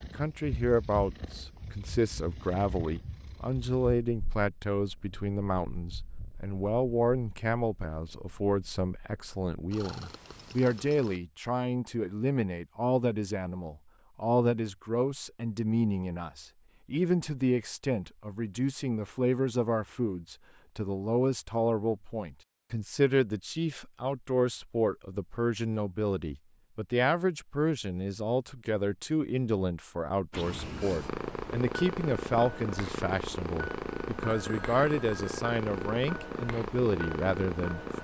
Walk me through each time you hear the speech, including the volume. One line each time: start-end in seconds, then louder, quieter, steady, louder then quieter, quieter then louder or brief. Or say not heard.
0.0-37.9 steady.